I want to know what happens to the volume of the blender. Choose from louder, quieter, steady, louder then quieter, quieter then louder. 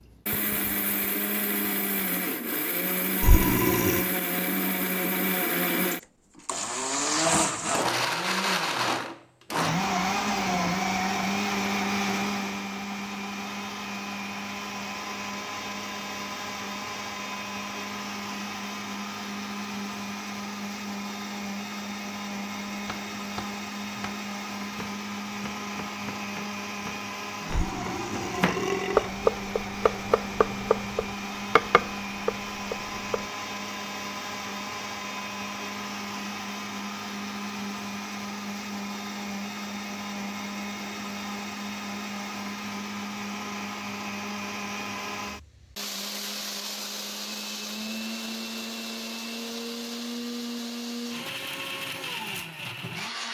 quieter.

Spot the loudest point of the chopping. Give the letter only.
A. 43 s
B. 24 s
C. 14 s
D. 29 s
D.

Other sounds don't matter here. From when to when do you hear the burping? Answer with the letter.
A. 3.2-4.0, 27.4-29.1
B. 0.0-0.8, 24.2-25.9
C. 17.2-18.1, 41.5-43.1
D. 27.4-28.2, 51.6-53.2
A.